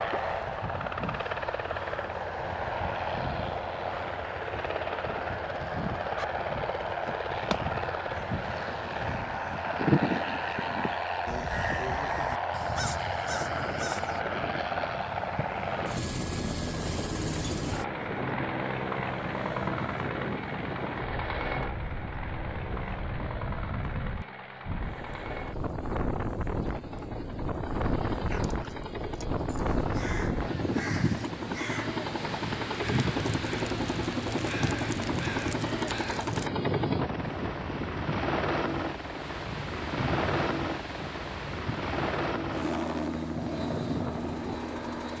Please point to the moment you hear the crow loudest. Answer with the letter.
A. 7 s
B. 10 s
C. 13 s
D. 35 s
B.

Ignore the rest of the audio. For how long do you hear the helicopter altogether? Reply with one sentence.
The helicopter can be heard for 45 seconds in total.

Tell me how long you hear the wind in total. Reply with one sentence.
You can hear the wind for 33 seconds altogether.